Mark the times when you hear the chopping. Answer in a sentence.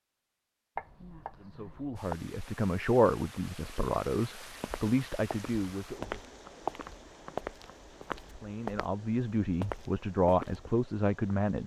You can hear the chopping from 0.8 to 2.1 s and from 6.4 to 8.2 s.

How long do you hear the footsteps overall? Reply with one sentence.
The footsteps can be heard for 6 seconds in total.